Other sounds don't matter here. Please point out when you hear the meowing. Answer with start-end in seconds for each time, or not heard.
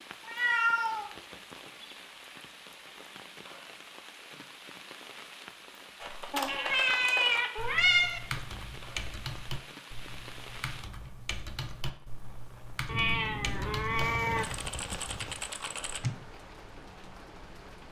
0.2-1.1, 6.3-8.2, 12.8-14.4.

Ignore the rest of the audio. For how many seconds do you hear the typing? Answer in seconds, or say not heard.
10 s.